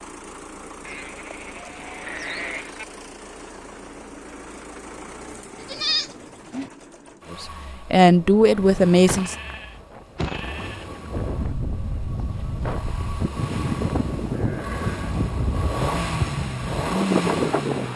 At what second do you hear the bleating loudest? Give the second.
6 s.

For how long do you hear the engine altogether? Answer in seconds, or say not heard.
18 s.